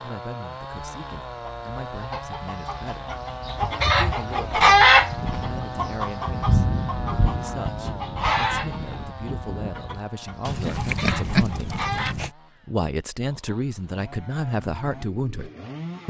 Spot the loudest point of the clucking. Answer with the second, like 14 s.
5 s.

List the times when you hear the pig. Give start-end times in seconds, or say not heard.
10.4-12.3.